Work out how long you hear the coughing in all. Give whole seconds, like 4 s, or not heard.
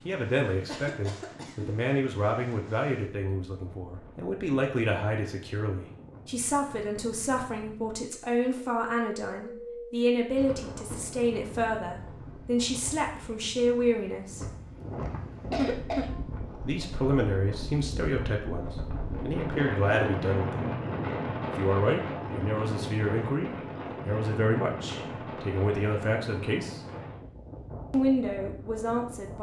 3 s.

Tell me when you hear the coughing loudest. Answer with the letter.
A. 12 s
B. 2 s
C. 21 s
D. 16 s
D.